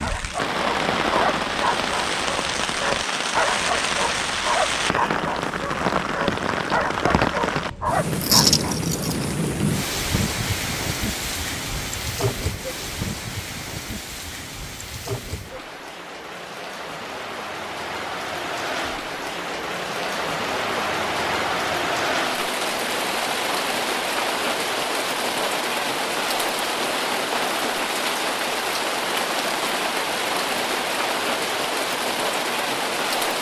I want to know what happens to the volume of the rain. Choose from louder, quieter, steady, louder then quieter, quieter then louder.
quieter then louder.